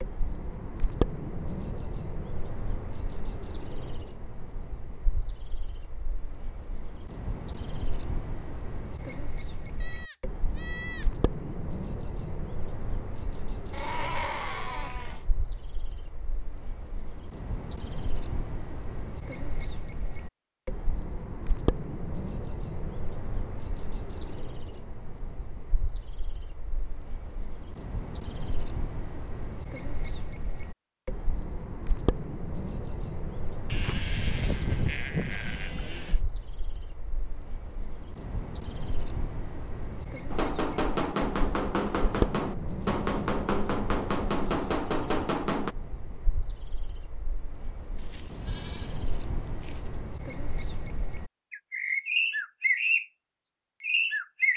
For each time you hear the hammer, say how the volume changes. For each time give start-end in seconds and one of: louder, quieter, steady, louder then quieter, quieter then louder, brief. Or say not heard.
40.3-45.8 steady.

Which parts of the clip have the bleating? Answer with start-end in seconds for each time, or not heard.
9.8-11.1, 13.7-15.2, 33.6-36.2, 48.0-50.0.